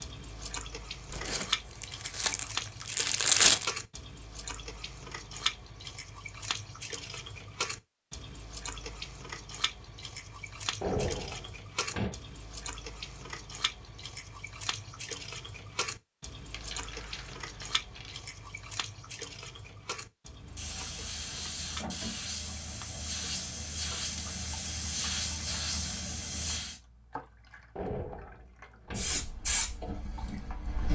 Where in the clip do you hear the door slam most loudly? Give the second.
11 s.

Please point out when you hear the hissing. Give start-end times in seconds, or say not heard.
20.4-26.8, 28.9-30.9.